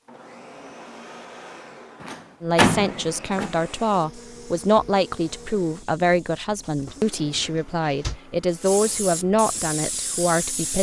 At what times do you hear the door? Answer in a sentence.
The door can be heard from 2.0 to 3.5 s and from 6.6 to 8.2 s.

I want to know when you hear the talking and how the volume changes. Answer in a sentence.
The talking can be heard from 2.4 to 10.7 s, at a steady volume.